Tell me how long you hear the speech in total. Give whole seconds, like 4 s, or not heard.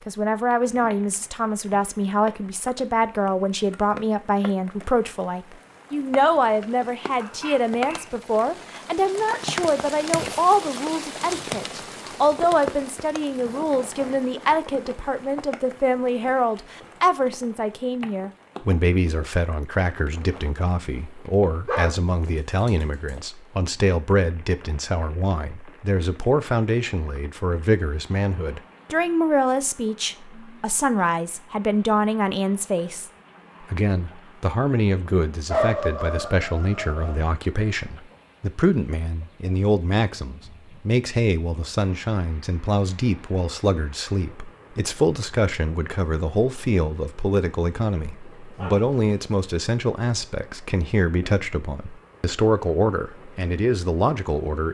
54 s.